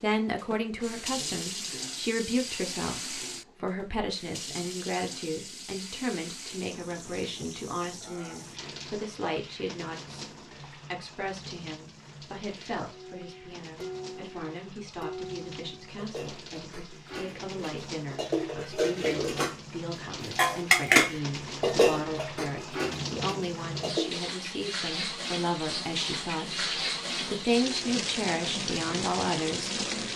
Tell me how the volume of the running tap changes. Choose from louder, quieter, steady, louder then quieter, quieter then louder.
quieter then louder.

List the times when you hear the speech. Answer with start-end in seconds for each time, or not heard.
0.0-30.1.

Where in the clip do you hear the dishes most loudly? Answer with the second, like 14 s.
21 s.